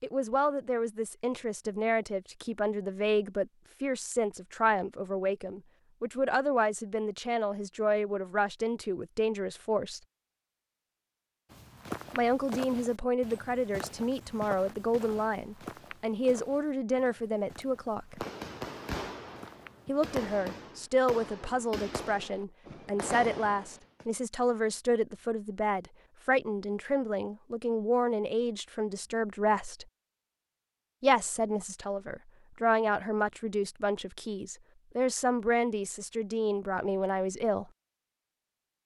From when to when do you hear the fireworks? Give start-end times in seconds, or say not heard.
18.2-24.1.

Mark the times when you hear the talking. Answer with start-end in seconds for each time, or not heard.
0.0-10.0, 12.1-18.2, 19.9-29.9, 31.0-37.6.